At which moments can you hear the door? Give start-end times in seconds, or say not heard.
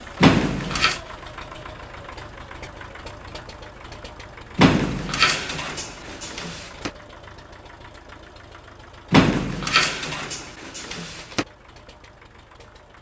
0.2-1.0, 4.5-6.9, 9.1-11.4.